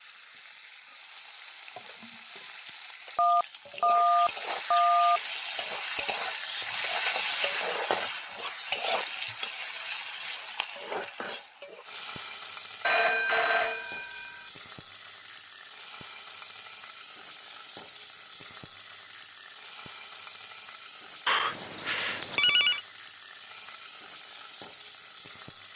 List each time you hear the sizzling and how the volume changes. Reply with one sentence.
The sizzling can be heard from 0.0 to 25.7 s, getting louder then quieter.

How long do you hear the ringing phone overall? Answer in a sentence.
The ringing phone can be heard for 5 seconds in total.